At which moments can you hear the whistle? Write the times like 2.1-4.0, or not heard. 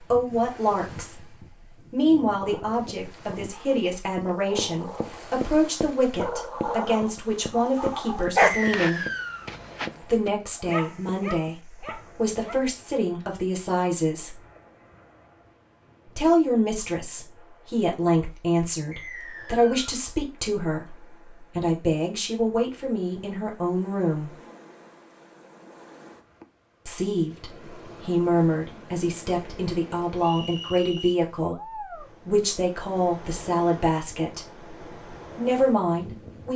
8.4-9.5, 18.9-19.9, 30.2-31.1.